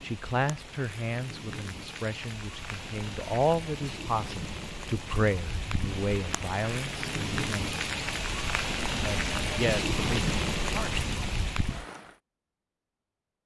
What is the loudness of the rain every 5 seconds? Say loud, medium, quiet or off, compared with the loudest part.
medium, loud, loud.